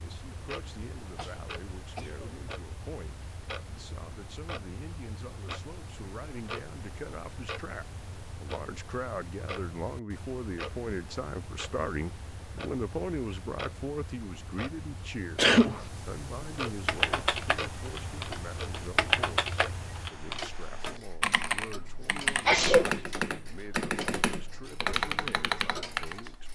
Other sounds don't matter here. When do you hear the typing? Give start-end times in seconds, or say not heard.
16.9-26.3.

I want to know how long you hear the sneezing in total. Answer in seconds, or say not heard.
2 s.